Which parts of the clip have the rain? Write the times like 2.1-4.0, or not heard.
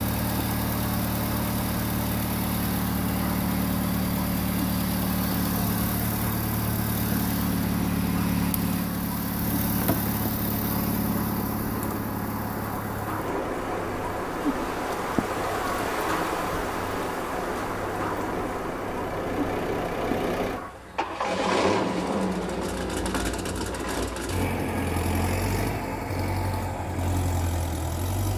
0.0-20.7.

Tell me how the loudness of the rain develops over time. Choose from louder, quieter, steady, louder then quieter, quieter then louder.
louder.